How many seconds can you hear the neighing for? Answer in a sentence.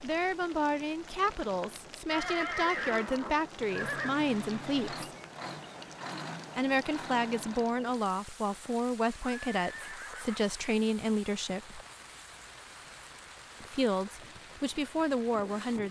You can hear the neighing for 3 seconds altogether.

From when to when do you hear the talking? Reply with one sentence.
You can hear the talking from 0.0 to 5.0 s, from 6.5 to 11.8 s and from 13.6 to 15.8 s.